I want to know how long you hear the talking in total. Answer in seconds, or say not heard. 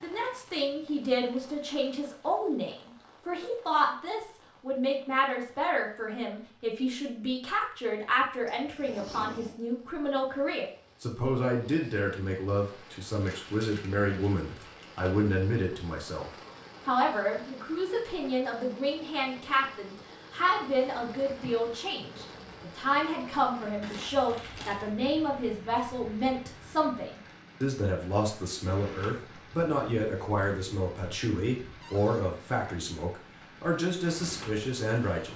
35 s.